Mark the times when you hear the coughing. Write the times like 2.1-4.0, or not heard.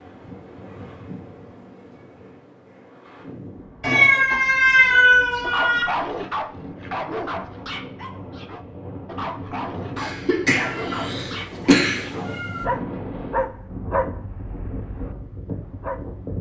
9.9-12.1.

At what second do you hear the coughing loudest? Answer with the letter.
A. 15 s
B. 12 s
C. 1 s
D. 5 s
B.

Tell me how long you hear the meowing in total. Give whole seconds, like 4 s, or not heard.
4 s.